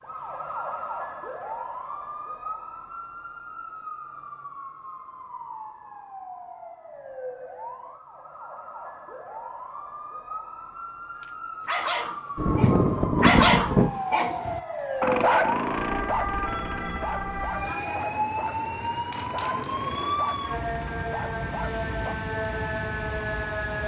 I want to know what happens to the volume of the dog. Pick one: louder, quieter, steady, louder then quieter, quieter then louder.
quieter.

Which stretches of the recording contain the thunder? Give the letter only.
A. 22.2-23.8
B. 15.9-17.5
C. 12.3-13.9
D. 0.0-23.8
C.